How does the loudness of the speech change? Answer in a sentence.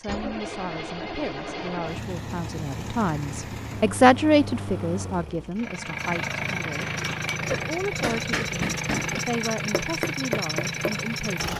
The volume of the speech goes up, then down.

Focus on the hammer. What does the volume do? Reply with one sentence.
The volume of the hammer goes up.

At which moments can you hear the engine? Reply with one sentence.
The engine can be heard from 0.0 to 11.5 s.